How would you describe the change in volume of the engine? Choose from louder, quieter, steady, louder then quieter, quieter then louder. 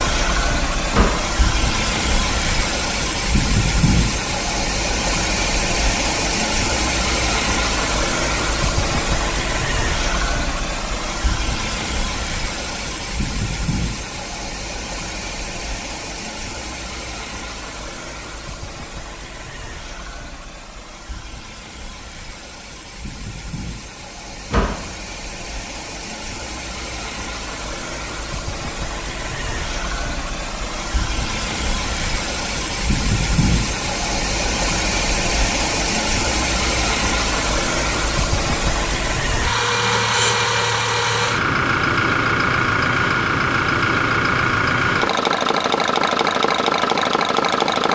quieter then louder.